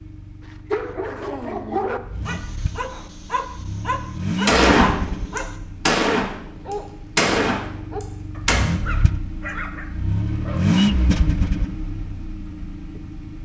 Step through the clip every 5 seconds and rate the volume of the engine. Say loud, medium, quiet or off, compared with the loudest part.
medium, medium, loud.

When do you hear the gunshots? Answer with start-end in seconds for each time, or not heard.
4.5-8.6.